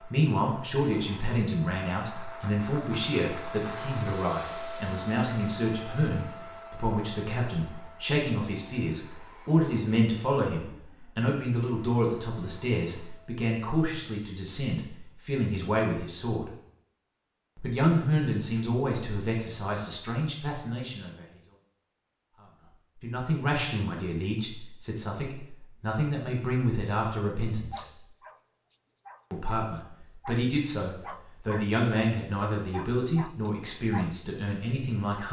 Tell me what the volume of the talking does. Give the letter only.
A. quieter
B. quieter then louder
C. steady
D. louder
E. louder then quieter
C.